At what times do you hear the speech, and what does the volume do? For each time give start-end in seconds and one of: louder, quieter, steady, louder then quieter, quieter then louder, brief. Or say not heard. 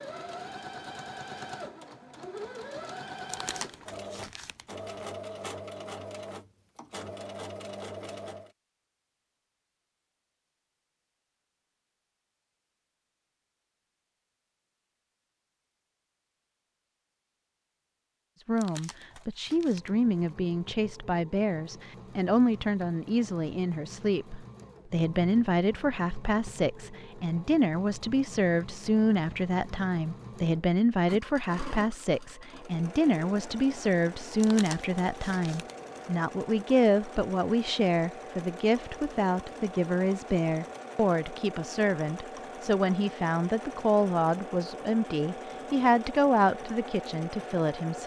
18.4-48.0 steady.